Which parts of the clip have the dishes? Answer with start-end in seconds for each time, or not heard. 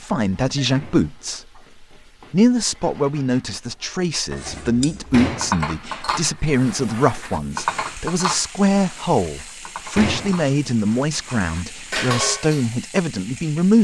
4.3-12.8.